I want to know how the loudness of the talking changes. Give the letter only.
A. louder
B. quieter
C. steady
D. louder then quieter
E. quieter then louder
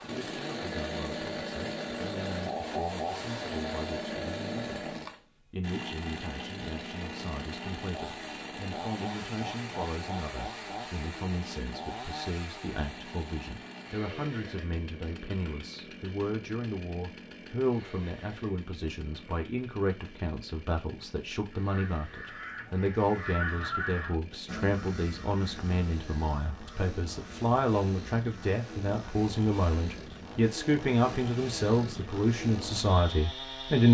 A.